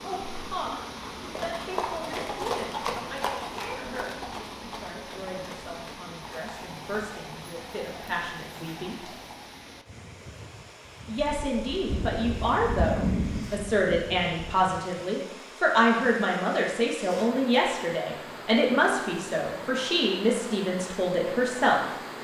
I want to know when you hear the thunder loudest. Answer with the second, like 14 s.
13 s.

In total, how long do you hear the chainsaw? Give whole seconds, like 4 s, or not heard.
not heard.